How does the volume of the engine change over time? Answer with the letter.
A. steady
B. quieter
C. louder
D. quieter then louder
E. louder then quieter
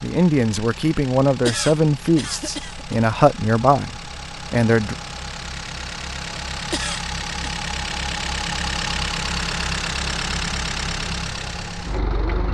C.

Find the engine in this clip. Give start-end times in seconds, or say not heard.
0.0-12.4.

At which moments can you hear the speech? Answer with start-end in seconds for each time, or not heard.
0.0-5.0.